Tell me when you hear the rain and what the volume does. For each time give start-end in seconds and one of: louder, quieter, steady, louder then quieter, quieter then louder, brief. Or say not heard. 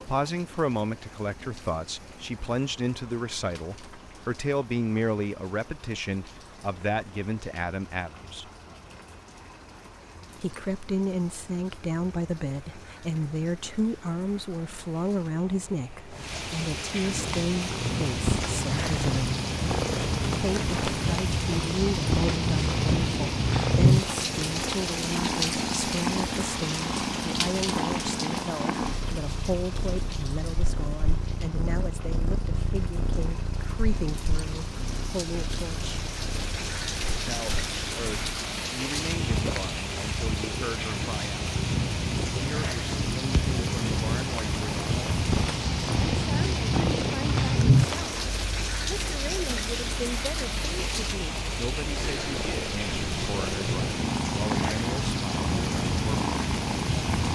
0.0-57.2 louder.